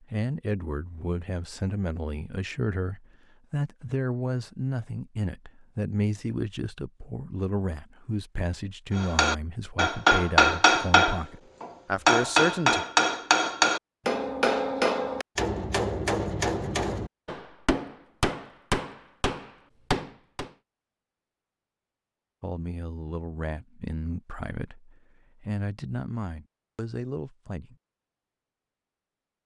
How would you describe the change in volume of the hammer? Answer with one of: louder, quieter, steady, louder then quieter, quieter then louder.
quieter.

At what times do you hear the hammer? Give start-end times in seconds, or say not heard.
8.9-20.5.